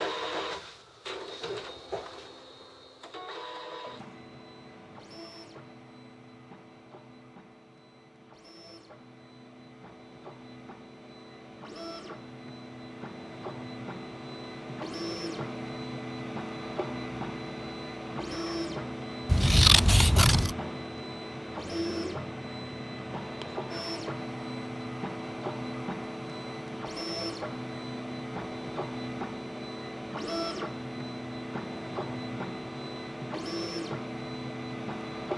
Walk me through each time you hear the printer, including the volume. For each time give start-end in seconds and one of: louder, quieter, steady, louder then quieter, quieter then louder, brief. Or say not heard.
0.0-35.3 louder.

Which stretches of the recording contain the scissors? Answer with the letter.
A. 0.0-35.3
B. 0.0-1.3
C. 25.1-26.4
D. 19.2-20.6
D.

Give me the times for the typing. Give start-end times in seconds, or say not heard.
not heard.